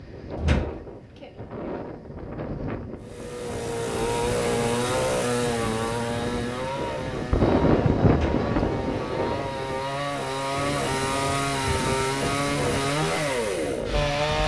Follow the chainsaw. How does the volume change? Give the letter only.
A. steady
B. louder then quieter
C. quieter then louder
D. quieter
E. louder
C.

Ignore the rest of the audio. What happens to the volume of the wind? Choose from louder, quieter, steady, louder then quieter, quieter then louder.
louder then quieter.